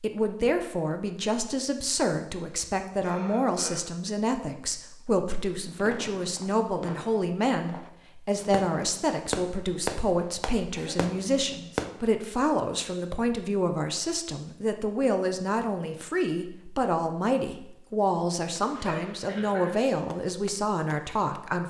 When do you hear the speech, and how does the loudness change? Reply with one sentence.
You can hear the speech from 0.0 to 21.6 s, at a steady volume.